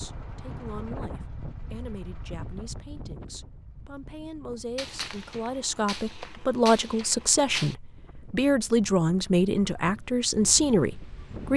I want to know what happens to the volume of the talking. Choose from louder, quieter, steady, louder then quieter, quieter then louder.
louder.